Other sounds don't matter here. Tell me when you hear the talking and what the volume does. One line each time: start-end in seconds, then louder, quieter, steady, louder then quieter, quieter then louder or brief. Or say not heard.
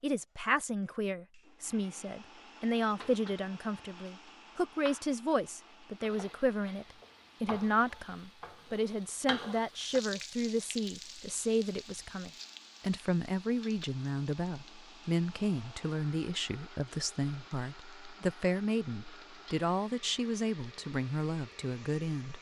0.0-22.3 steady.